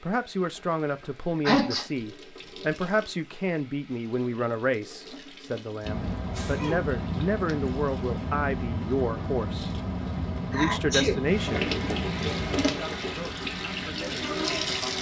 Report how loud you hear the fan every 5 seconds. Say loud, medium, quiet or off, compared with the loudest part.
off, loud, loud.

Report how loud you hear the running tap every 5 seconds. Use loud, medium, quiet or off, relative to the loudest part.
quiet, quiet, loud.